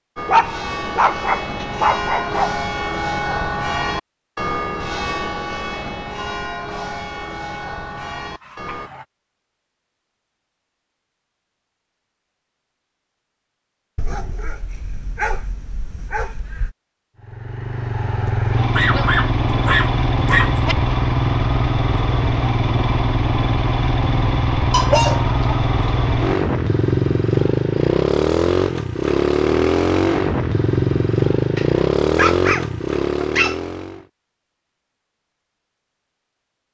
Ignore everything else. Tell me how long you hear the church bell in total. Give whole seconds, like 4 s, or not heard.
9 s.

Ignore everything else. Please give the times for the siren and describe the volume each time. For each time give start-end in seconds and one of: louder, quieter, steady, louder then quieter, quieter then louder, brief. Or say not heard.
not heard.